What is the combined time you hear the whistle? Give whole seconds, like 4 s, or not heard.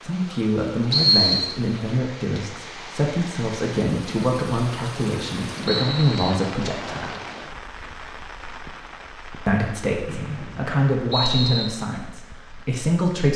3 s.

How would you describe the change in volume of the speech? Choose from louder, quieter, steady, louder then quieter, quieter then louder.
steady.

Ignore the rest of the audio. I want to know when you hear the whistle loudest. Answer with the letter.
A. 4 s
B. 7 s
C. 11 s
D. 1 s
D.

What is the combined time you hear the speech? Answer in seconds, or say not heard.
11 s.